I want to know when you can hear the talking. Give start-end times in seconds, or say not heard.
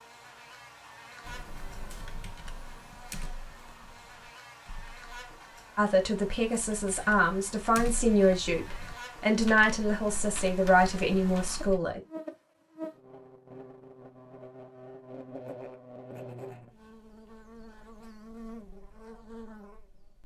5.8-12.0.